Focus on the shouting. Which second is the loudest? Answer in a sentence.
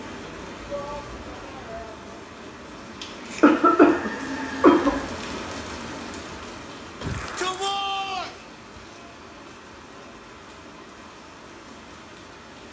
The loudest moment of the shouting is at 8 seconds.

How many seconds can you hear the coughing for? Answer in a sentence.
The coughing can be heard for 2 seconds in total.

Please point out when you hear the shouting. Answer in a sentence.
The shouting can be heard from 0.7 to 2.1 s and from 7.0 to 8.3 s.